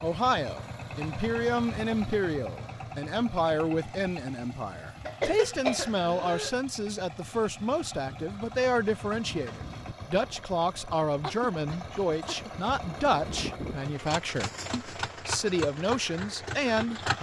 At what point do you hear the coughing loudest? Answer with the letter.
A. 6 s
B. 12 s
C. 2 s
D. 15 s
A.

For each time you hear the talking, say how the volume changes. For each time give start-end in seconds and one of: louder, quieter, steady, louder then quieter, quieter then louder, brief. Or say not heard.
0.0-17.1 steady.